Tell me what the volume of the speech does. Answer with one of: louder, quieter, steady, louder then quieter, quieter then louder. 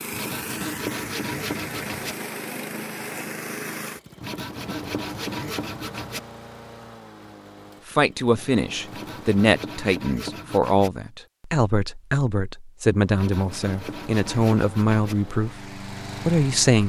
steady.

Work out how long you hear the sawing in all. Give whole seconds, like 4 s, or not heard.
8 s.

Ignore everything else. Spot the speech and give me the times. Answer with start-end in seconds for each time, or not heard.
7.8-16.8.